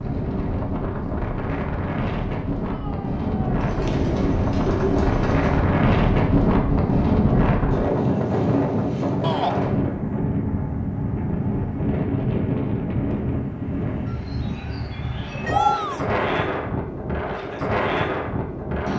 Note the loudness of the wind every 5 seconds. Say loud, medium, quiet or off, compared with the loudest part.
medium, loud, medium, medium.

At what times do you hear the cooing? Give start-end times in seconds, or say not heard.
3.5-5.6, 14.1-15.8.